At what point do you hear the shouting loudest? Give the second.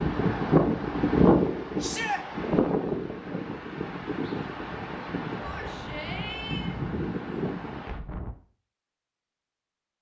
2 s.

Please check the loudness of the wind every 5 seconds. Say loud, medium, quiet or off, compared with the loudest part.
loud, medium.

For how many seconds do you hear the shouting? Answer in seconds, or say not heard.
2 s.